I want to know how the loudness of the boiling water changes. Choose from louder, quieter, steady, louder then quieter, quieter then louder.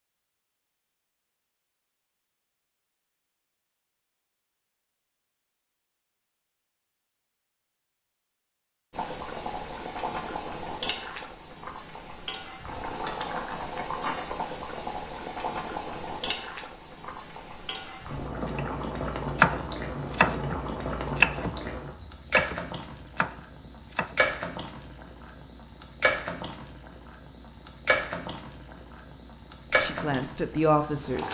steady.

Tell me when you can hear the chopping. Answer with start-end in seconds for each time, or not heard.
18.6-24.4.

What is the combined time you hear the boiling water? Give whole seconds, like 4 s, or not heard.
22 s.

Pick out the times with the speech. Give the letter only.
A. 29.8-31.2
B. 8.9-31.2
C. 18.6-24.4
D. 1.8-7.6
A.